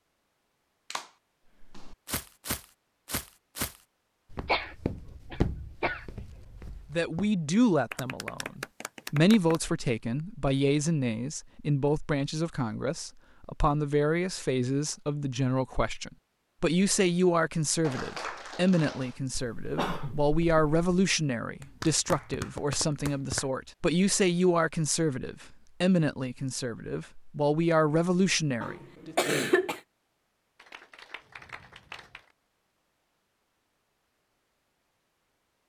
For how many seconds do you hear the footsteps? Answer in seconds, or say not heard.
6 s.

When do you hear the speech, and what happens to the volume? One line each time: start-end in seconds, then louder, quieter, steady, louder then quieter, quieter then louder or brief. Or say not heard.
6.9-29.1 steady.